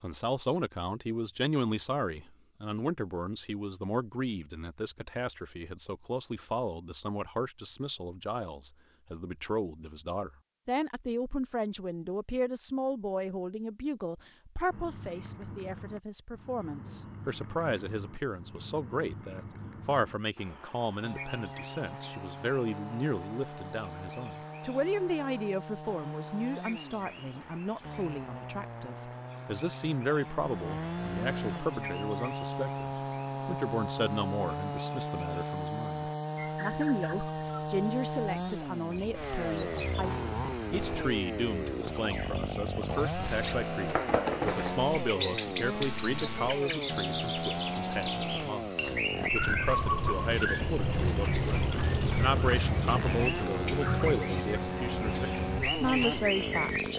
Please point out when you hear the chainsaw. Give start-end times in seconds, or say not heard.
21.0-56.9.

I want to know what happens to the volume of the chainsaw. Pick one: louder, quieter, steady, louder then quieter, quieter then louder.
louder.